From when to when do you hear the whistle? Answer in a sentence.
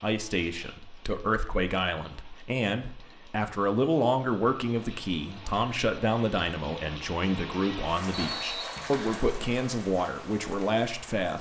You can hear the whistle from 8.2 to 9.2 s.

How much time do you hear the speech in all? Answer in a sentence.
You can hear the speech for 11 seconds altogether.